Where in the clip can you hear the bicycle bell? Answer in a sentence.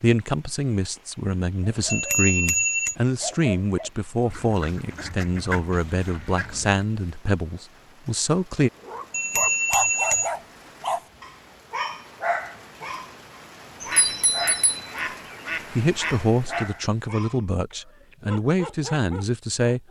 You can hear the bicycle bell from 1.9 to 3.0 s, from 9.1 to 10.3 s and from 14.0 to 14.8 s.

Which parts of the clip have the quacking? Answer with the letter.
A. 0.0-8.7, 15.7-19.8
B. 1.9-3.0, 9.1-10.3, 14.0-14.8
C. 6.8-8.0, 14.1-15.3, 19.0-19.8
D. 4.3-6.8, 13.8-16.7
D.